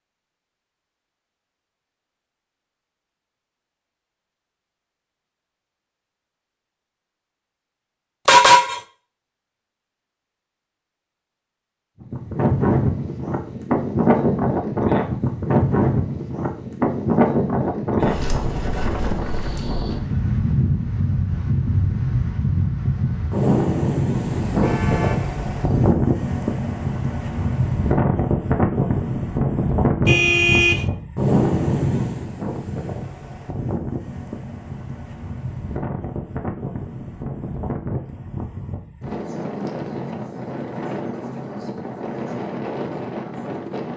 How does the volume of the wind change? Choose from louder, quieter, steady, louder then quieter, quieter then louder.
quieter.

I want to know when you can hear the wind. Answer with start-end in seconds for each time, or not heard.
12.0-43.9.